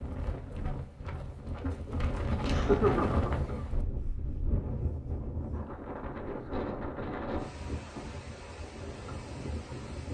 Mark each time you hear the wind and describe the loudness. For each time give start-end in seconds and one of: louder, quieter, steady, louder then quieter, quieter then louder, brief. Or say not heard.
0.0-10.1 louder then quieter.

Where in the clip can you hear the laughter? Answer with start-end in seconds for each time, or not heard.
2.5-3.4.